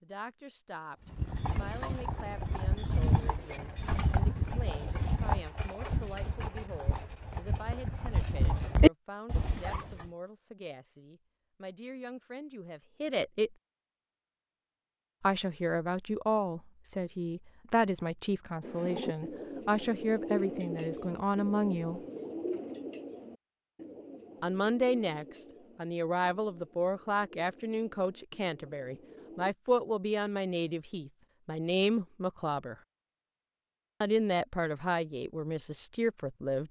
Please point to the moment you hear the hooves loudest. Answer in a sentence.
The volume of the hooves peaks at 9 seconds.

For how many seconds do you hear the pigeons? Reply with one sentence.
The pigeons can be heard for 11 seconds in total.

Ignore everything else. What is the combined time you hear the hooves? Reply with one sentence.
The hooves can be heard for 9 seconds in total.